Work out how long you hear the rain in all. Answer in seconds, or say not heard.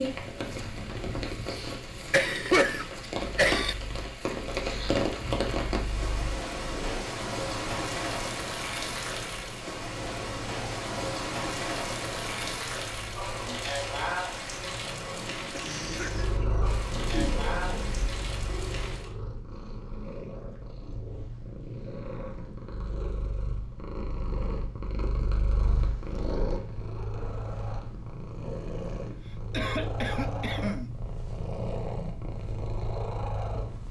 19 s.